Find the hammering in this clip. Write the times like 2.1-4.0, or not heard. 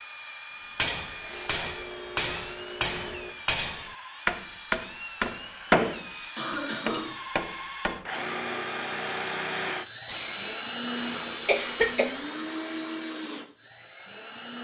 0.8-8.1.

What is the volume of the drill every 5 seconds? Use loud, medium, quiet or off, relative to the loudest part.
medium, loud, loud.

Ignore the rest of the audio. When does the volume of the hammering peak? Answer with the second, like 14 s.
6 s.